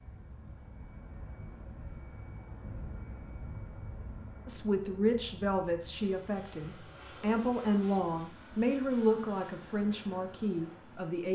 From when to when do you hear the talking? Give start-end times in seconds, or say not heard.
4.5-11.2.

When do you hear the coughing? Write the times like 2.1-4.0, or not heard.
not heard.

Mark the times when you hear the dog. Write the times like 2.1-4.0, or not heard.
not heard.